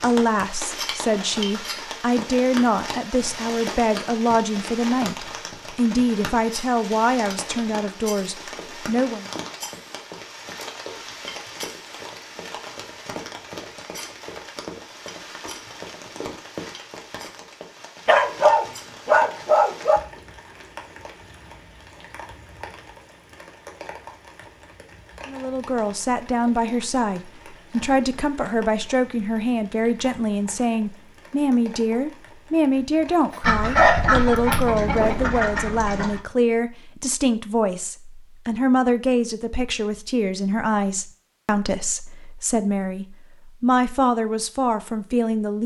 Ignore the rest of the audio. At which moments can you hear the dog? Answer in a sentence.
The dog can be heard from 18.1 to 20.0 s and from 33.3 to 35.2 s.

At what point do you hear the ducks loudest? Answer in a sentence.
The loudest moment of the ducks is at 34 seconds.